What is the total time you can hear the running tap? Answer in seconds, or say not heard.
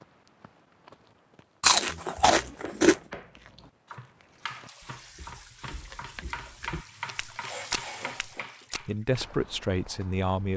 5 s.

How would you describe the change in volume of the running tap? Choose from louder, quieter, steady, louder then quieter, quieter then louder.
louder.